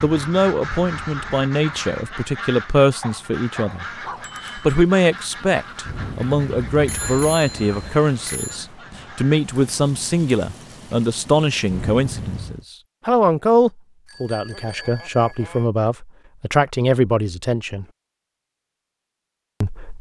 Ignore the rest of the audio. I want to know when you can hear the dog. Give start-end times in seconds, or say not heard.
3.0-4.3.